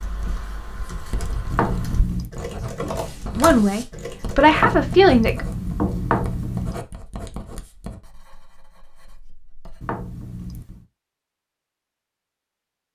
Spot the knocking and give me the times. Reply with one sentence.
The knocking can be heard from 1.5 to 2.3 s, from 4.5 to 6.8 s and from 9.8 to 10.8 s.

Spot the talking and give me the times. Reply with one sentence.
You can hear the talking from 3.4 to 5.5 s.